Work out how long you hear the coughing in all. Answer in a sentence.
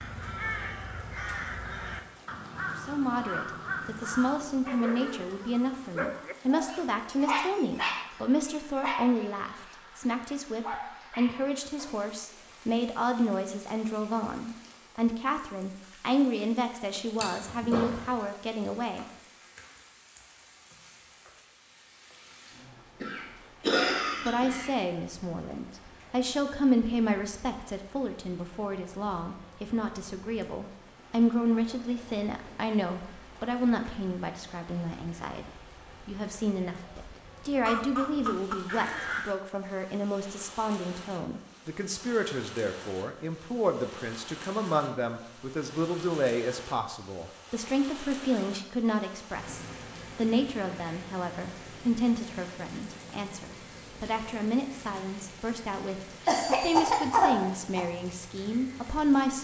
You can hear the coughing for 4 seconds altogether.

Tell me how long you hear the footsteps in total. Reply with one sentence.
The footsteps can't be heard in this clip.